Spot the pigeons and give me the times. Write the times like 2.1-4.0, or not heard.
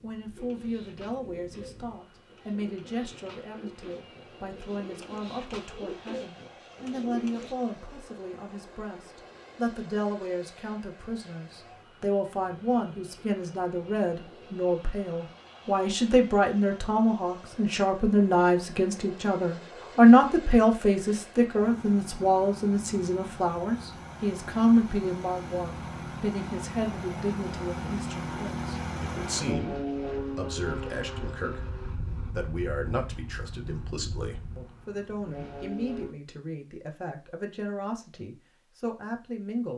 0.3-7.5.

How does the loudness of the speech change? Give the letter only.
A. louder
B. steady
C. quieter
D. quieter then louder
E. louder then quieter
E.